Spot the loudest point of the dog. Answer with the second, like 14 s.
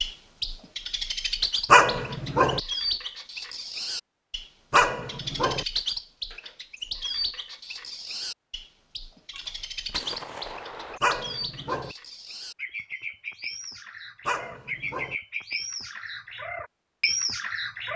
2 s.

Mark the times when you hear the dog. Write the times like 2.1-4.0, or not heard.
1.7-2.6, 4.7-5.7, 11.0-11.9, 14.2-15.2.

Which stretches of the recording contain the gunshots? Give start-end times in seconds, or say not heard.
9.3-11.0.